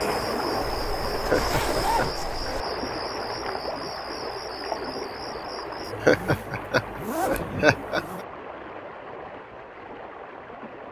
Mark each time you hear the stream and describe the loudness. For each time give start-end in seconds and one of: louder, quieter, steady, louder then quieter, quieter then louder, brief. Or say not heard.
0.0-10.8 quieter.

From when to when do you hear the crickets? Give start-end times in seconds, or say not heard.
0.0-6.0.